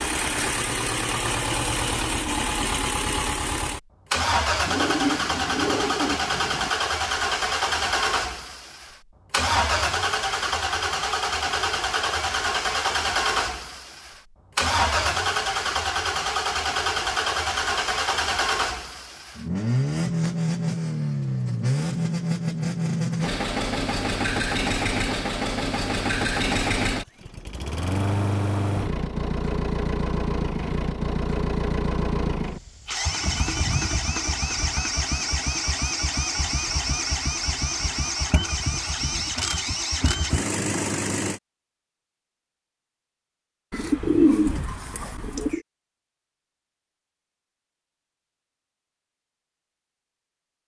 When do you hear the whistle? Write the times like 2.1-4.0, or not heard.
not heard.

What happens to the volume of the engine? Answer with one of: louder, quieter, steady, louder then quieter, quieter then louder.
steady.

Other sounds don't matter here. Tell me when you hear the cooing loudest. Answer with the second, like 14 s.
44 s.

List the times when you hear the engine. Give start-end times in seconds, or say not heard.
0.0-41.4.